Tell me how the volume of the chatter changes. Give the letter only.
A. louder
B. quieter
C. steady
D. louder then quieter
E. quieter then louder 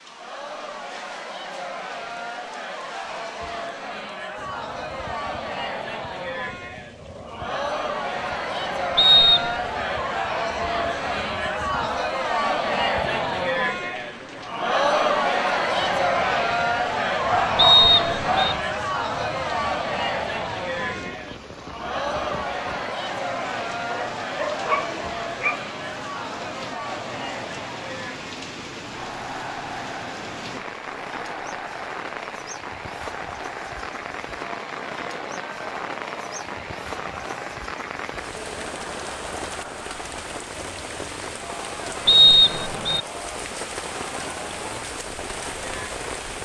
D.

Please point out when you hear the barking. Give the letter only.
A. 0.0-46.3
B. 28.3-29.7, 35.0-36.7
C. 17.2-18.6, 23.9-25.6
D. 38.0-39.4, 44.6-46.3
C.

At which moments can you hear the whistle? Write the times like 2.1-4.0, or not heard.
8.9-9.6, 17.6-18.6, 42.0-43.0.